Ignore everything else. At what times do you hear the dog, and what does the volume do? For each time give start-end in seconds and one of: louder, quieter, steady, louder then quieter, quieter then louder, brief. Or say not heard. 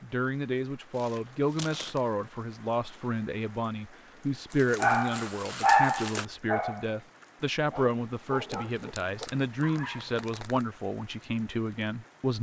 4.8-10.2 quieter.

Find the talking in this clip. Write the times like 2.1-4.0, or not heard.
0.0-12.3.